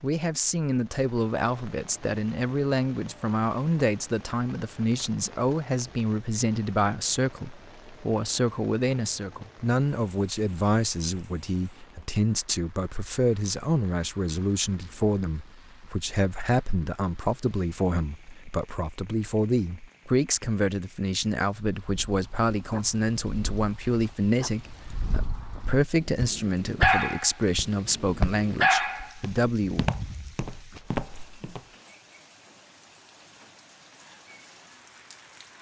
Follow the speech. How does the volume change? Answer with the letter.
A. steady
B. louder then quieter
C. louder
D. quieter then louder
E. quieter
A.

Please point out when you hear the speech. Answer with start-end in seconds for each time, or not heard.
0.0-29.9.